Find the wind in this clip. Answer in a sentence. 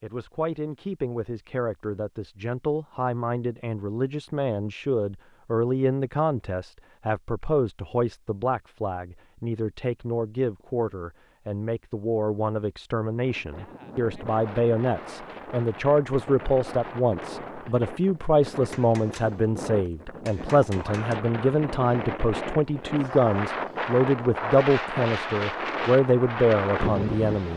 You can hear the wind from 13.2 to 27.5 s.